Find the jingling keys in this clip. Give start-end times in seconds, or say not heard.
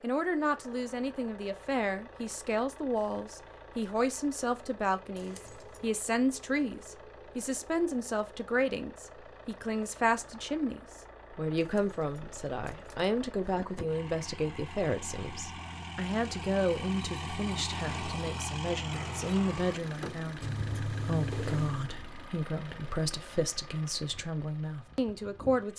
5.2-5.9, 11.6-13.8, 20.4-21.9.